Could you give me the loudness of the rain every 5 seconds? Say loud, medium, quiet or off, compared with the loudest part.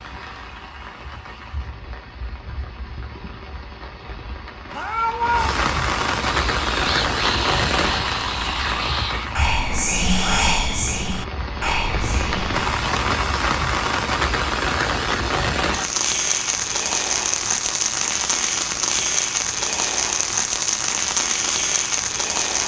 quiet, loud, loud, loud, loud.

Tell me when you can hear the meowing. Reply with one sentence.
The meowing can be heard from 4.7 to 5.6 s.